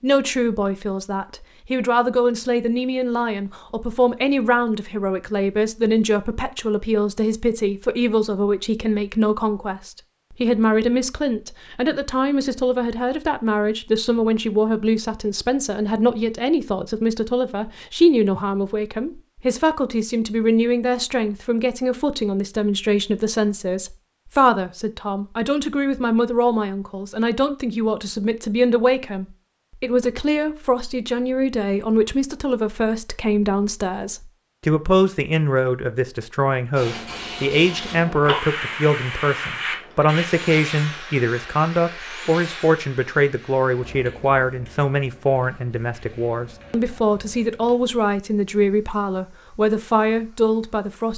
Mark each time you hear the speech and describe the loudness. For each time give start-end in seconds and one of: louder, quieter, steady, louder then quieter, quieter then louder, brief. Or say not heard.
0.0-51.1 steady.